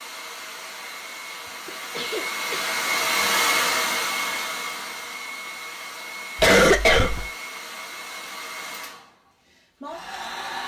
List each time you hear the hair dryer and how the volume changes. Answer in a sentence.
You can hear the hair dryer from 0.0 to 10.6 s, getting louder then quieter.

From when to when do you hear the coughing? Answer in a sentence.
You can hear the coughing from 1.6 to 2.8 s and from 6.3 to 7.2 s.